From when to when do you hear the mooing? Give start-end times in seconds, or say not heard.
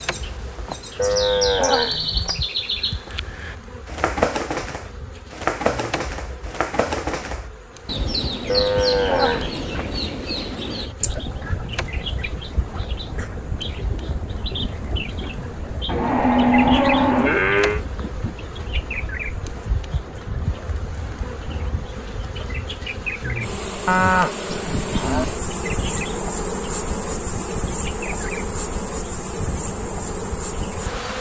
0.9-2.4, 8.4-9.7, 15.8-17.8, 23.9-25.2.